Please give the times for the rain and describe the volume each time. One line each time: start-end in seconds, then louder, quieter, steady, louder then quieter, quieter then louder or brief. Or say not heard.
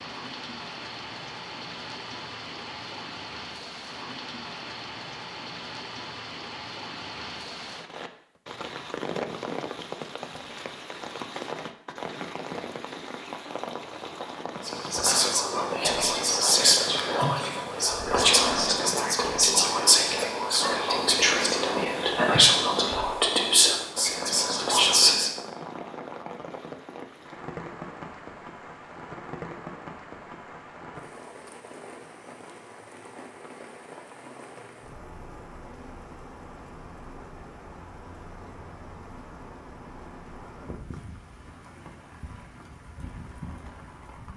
0.0-44.3 quieter.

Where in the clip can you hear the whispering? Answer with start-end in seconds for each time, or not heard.
14.7-25.3.